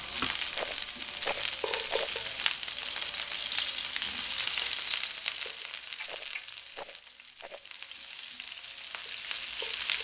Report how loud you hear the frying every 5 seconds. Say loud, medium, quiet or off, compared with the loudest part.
loud, medium.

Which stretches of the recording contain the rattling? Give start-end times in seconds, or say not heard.
0.6-2.1, 6.0-7.7.